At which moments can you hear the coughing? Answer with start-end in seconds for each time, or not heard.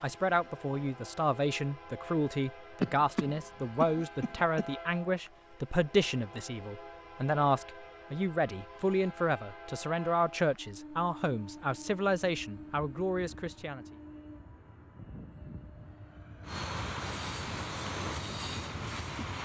2.8-4.7.